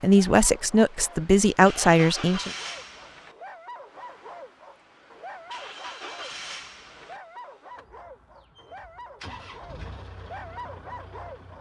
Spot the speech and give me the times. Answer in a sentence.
You can hear the speech from 0.0 to 2.5 s.